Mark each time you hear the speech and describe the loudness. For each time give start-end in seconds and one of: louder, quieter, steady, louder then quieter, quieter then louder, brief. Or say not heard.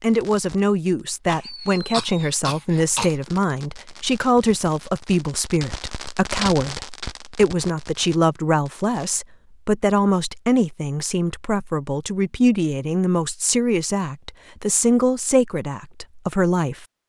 0.0-16.9 steady.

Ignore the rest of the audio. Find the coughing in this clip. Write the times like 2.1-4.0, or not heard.
1.2-3.1.